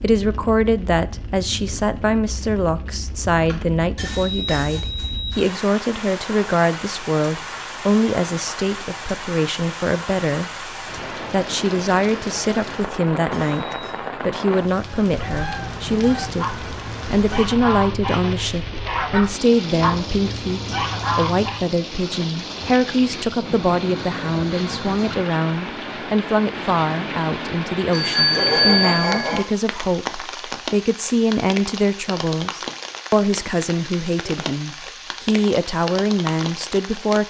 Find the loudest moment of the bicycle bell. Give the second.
29 s.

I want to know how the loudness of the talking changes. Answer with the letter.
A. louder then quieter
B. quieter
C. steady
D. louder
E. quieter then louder
C.